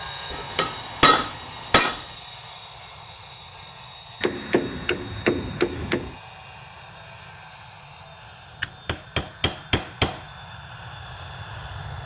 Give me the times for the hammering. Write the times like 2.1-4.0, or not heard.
0.3-2.1, 4.2-6.1, 8.6-10.2.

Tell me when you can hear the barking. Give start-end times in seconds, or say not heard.
not heard.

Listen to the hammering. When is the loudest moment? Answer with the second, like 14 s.
1 s.